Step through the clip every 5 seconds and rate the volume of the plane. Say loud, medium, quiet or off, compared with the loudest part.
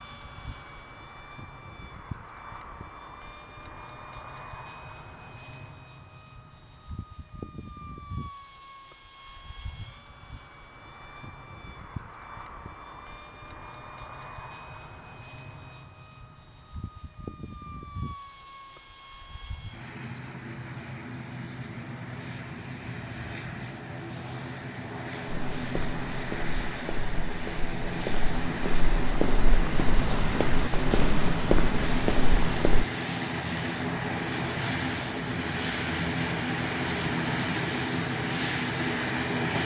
quiet, quiet, quiet, quiet, medium, medium, loud, loud.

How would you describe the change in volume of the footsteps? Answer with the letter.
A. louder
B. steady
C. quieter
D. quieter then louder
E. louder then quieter
A.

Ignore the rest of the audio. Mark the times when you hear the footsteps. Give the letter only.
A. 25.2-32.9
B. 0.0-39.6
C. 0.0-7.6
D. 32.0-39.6
A.